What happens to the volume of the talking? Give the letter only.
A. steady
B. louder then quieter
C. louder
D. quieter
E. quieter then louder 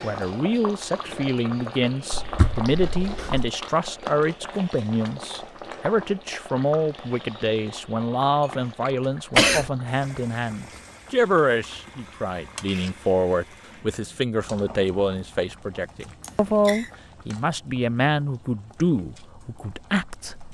A.